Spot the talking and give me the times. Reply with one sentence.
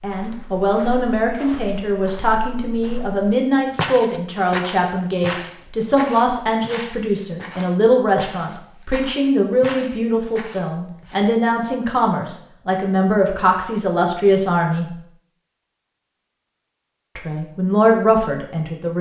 The talking can be heard from 0.0 to 14.9 s and from 17.1 to 18.9 s.